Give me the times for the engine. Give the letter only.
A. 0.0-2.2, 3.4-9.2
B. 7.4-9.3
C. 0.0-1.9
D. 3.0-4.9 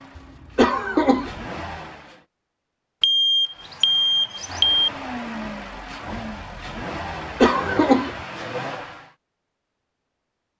A.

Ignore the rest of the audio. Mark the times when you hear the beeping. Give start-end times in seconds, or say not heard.
3.0-4.9.